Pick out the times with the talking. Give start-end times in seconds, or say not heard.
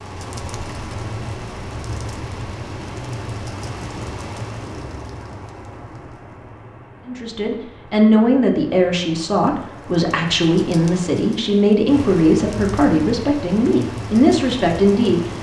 7.0-15.2.